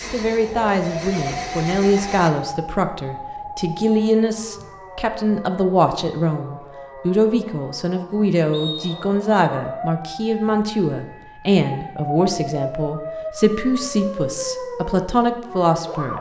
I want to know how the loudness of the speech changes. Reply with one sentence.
The loudness of the speech stays about the same.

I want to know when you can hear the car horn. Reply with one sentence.
The car horn can't be heard in this clip.